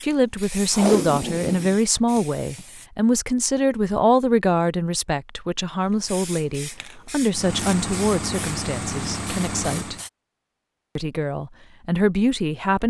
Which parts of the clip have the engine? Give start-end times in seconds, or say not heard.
7.3-10.1.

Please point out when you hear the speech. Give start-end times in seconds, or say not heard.
0.0-9.9, 10.9-12.8.